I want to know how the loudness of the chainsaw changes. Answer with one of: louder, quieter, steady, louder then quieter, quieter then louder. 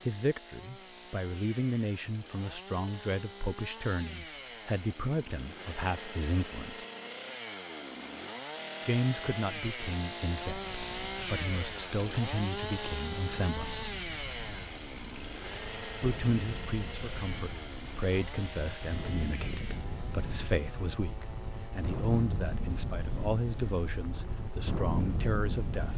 louder then quieter.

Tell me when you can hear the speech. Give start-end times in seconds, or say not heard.
0.1-6.8, 8.8-13.8, 16.0-25.9.